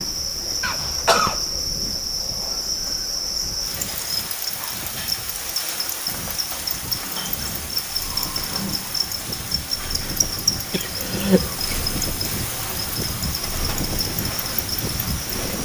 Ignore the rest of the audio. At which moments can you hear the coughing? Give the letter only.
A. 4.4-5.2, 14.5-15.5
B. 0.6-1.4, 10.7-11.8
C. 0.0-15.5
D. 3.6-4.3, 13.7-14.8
B.